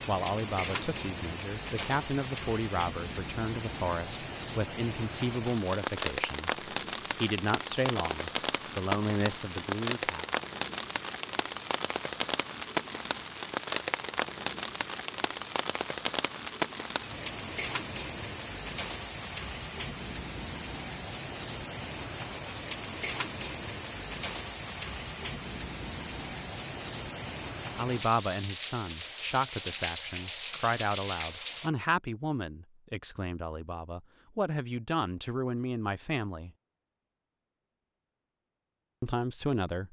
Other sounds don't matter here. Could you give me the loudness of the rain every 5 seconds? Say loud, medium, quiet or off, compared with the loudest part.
loud, loud, loud, loud, loud, loud, loud, off.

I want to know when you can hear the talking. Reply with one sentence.
You can hear the talking from 0.1 to 10.2 s, from 27.8 to 36.5 s and from 39.0 to 39.8 s.